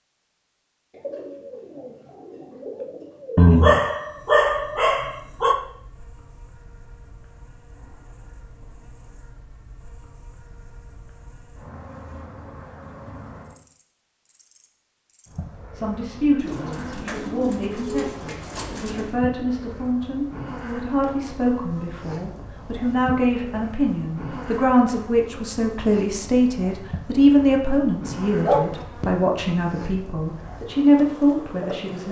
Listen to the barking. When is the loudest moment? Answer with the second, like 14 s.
4 s.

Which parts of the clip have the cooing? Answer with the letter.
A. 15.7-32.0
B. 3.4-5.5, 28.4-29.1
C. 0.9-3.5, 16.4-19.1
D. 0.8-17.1
C.